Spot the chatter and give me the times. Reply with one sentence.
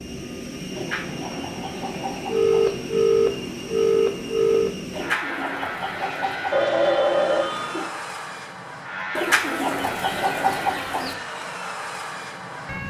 The chatter can't be heard in this clip.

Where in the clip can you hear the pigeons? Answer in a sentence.
You can hear the pigeons from 0.7 to 2.8 s, from 4.9 to 6.6 s and from 9.2 to 11.2 s.